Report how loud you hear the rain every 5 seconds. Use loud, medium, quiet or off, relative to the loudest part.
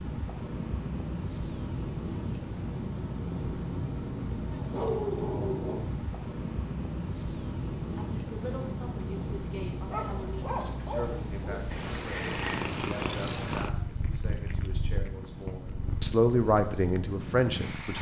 loud, loud, medium, medium.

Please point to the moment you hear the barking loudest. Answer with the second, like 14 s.
5 s.